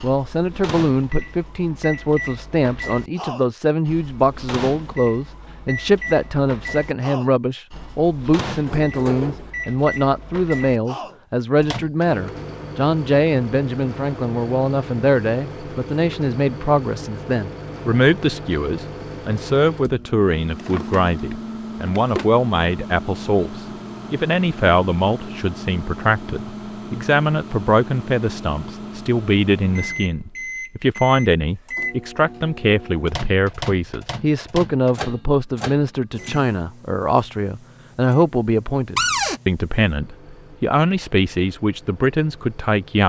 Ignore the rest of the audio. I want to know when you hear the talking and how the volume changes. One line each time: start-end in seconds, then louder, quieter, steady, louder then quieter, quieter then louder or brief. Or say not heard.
0.0-43.0 steady.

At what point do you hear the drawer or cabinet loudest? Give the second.
39 s.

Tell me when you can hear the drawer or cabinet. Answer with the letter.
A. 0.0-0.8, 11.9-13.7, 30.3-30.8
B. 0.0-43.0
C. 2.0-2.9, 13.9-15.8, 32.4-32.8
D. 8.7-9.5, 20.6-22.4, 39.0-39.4
D.